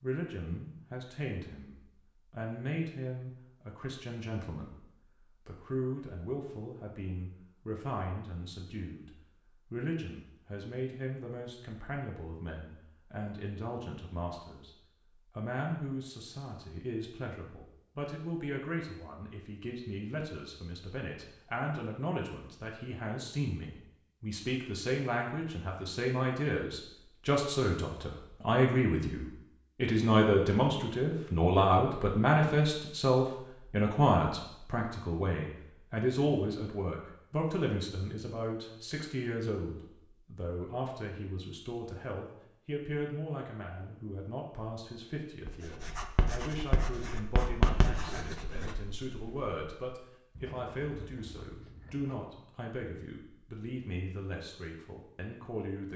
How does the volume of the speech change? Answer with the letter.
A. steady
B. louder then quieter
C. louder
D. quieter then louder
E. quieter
B.